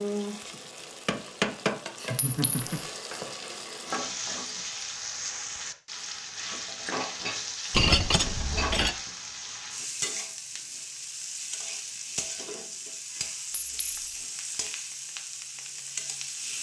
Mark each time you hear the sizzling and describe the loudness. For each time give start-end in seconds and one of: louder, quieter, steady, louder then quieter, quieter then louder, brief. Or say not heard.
0.0-16.5 steady.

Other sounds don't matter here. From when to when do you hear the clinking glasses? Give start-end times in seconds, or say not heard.
2.1-2.8, 7.7-8.9, 13.5-14.2.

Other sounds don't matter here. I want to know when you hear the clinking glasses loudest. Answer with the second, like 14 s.
8 s.